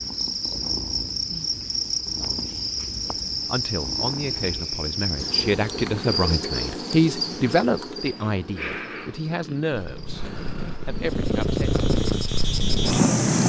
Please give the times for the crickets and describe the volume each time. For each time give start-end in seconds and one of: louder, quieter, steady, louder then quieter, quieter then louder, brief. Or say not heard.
0.0-13.4 quieter then louder.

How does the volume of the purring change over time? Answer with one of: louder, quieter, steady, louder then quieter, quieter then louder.
louder.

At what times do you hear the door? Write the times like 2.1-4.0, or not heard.
not heard.